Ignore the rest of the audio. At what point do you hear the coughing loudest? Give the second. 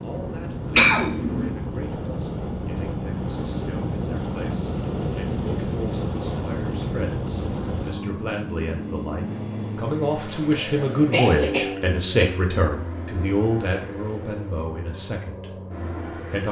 1 s.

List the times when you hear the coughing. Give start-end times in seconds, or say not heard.
0.8-1.5, 10.3-12.3.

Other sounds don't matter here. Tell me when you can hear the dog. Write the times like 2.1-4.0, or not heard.
not heard.